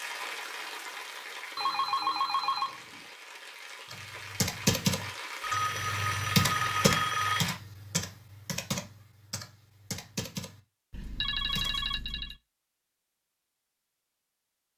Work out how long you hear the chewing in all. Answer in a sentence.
You can't hear the chewing here.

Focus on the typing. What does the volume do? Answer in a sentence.
The loudness of the typing goes down.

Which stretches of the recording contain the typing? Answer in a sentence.
You can hear the typing from 3.9 to 11.9 s.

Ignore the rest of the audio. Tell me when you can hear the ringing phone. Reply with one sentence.
You can hear the ringing phone from 1.6 to 2.8 s, from 5.4 to 7.5 s and from 10.9 to 12.3 s.